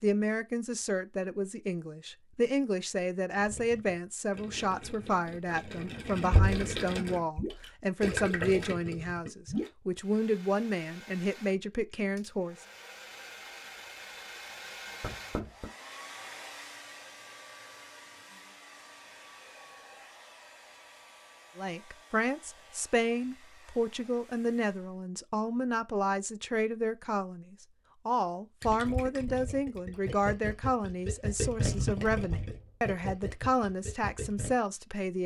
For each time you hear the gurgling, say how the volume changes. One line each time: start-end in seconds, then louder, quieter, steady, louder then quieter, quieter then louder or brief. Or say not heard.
3.4-9.7 louder
28.6-34.5 louder then quieter.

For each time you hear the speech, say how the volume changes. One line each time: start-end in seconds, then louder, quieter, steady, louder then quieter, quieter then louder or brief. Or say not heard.
0.0-12.6 steady
21.6-35.2 steady.